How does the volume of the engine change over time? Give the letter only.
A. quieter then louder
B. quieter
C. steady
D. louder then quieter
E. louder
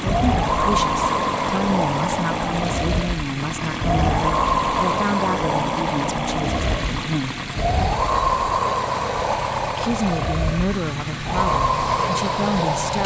C.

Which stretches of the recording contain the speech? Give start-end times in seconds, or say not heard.
0.0-7.4, 9.6-13.0.